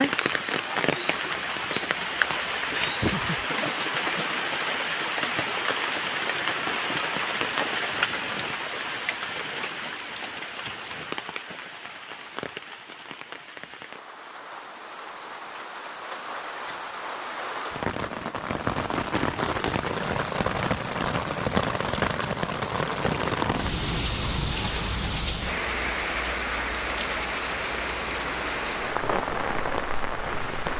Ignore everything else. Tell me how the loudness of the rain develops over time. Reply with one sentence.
The volume of the rain goes down, then up.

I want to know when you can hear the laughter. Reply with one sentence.
You can hear the laughter from 3.0 to 4.3 s.